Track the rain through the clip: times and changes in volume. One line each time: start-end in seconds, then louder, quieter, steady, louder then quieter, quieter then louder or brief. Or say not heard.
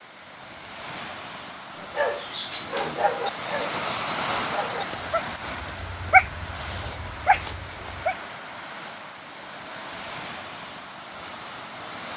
0.0-12.1 louder then quieter.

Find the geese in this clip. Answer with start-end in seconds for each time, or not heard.
not heard.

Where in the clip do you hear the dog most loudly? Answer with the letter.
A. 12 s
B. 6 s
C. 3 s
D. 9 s
B.